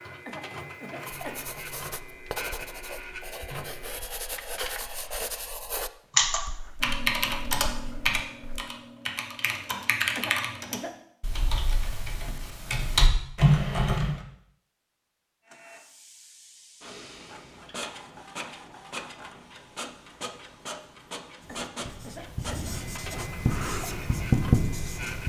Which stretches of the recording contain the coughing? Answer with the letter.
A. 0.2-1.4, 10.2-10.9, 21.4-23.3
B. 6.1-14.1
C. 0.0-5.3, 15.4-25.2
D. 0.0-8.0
A.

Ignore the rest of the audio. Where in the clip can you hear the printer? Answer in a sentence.
You can hear the printer from 0.0 to 5.3 s and from 15.4 to 25.2 s.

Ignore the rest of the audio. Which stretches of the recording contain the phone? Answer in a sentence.
You can't hear the phone here.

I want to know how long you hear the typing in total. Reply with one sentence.
You can hear the typing for 8 seconds altogether.